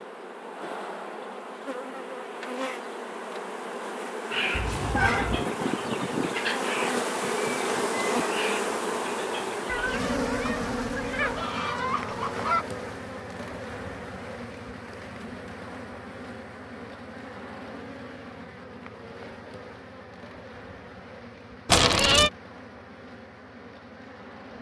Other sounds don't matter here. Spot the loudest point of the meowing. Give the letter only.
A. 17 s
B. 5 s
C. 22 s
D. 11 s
C.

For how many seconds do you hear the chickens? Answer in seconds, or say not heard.
8 s.